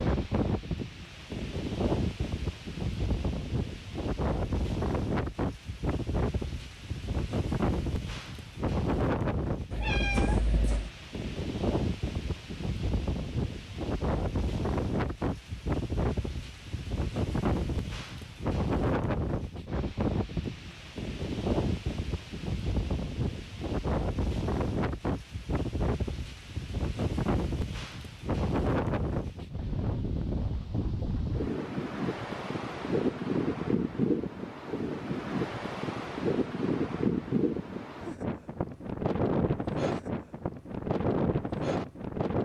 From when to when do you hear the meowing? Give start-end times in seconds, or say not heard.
9.7-10.9.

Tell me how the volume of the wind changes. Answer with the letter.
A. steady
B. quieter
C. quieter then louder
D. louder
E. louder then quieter
A.